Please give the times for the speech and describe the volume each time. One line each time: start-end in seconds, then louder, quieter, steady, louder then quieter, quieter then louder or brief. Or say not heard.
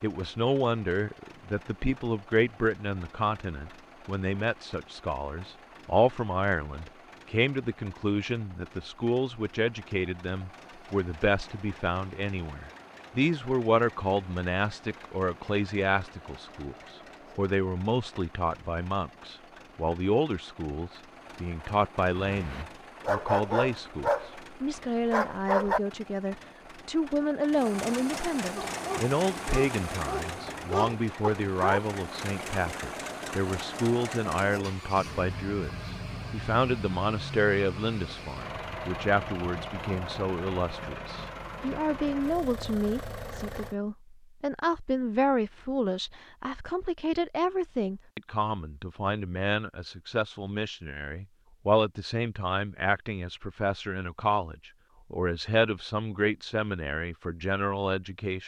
0.0-58.4 steady.